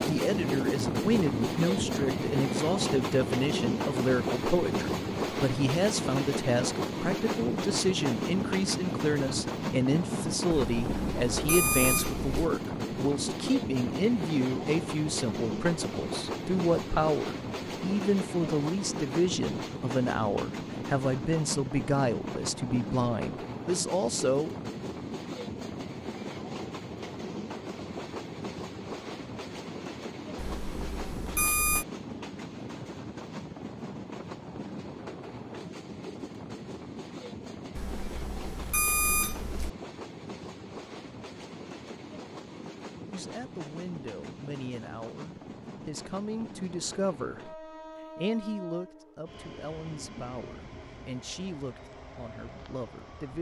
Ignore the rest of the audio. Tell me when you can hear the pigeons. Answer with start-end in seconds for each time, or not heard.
not heard.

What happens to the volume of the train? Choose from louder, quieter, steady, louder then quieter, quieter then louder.
quieter.